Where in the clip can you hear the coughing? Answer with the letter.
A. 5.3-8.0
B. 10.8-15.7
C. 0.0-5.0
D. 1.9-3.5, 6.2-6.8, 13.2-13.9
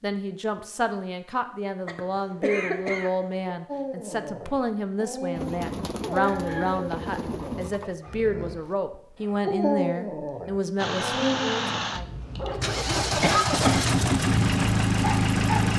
D.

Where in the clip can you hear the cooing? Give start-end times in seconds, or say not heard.
5.3-8.0.